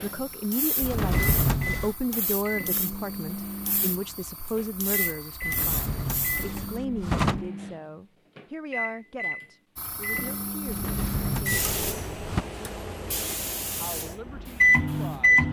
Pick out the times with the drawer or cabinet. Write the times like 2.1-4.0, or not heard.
0.8-1.9, 5.4-7.5, 10.7-12.4.